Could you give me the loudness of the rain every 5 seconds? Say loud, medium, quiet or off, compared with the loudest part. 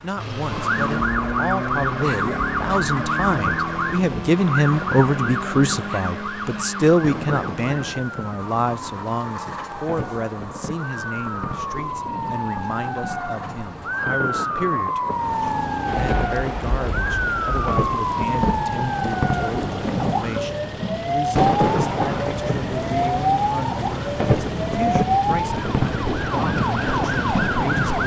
medium, medium, medium, loud, loud, loud.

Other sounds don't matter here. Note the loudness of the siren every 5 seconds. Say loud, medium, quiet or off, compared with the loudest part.
loud, medium, loud, loud, loud, loud.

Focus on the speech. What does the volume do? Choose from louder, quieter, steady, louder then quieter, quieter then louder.
quieter.